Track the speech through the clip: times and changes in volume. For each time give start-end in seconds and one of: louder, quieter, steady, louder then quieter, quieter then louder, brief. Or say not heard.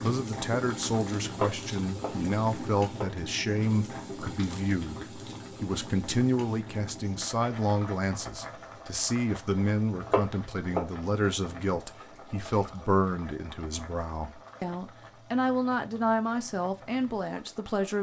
0.0-17.9 steady.